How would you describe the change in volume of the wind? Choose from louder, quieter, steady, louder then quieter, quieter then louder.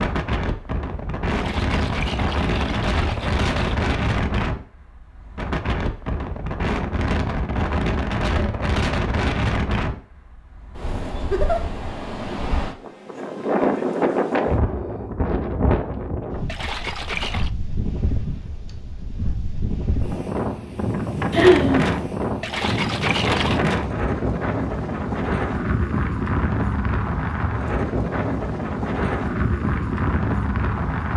steady.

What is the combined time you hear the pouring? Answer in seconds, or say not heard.
5 s.